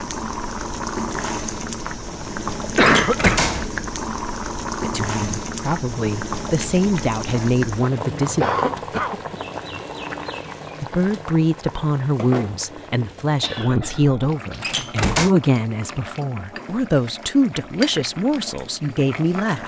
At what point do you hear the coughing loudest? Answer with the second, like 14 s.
3 s.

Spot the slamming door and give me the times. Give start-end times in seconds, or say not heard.
2.8-3.8, 14.6-15.3.